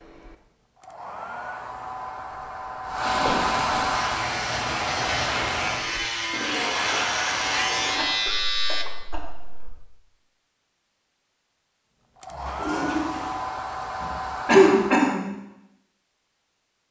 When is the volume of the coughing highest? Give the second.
15 s.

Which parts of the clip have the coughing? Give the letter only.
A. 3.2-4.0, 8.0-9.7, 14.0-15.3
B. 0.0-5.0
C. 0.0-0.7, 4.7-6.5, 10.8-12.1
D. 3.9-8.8
A.